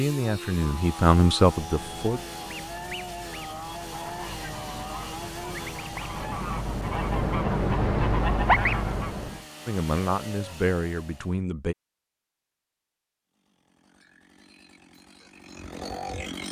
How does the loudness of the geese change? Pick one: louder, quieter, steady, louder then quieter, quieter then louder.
louder.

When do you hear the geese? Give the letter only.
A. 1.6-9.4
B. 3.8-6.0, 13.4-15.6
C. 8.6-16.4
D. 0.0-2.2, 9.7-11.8
A.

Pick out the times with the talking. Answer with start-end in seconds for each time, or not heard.
0.0-2.2, 9.7-11.8.